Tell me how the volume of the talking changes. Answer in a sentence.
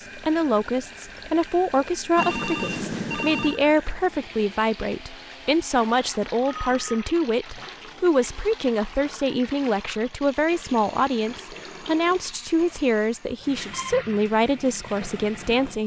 The loudness of the talking stays about the same.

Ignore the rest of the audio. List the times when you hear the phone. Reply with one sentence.
The phone can be heard from 2.1 to 3.6 s, from 6.5 to 7.2 s and from 12.6 to 14.0 s.